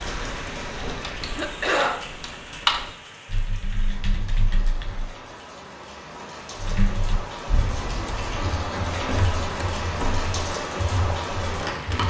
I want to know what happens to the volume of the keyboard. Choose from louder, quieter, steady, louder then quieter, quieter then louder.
louder then quieter.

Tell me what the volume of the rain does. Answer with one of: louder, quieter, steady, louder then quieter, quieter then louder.
quieter then louder.